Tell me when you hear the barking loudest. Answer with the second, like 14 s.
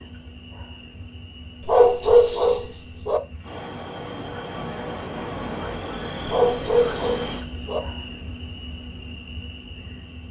2 s.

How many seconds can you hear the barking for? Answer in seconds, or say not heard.
3 s.